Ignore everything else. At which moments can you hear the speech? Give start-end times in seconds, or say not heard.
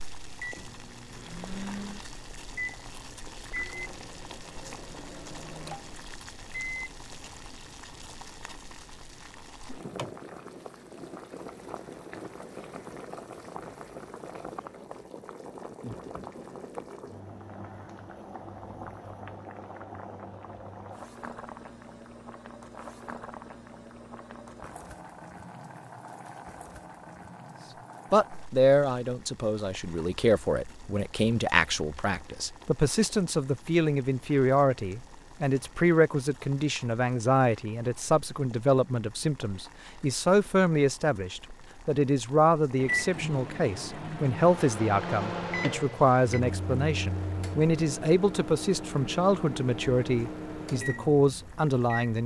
28.1-52.2.